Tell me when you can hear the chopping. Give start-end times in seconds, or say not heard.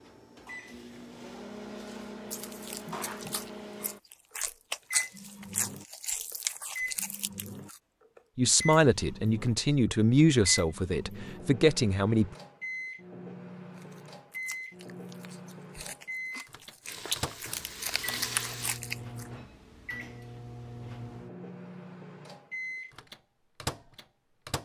not heard.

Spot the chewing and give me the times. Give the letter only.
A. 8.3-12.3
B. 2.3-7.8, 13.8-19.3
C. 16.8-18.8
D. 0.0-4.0
B.